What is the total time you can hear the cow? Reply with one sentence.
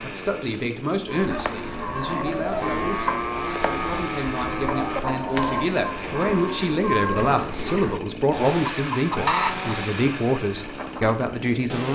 You can hear the cow for 5 seconds altogether.